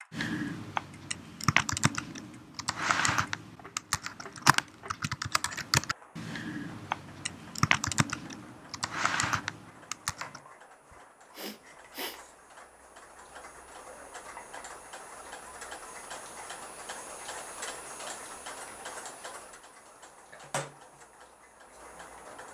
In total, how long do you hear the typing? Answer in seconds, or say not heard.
10 s.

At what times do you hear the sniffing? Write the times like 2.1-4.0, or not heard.
10.9-12.2.